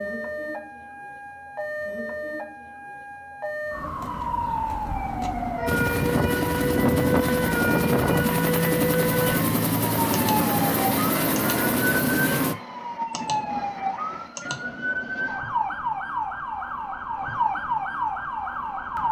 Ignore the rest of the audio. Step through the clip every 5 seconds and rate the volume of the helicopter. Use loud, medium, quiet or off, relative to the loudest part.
off, loud, loud, off.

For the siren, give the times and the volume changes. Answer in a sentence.
You can hear the siren from 0.0 to 19.0 s, getting louder.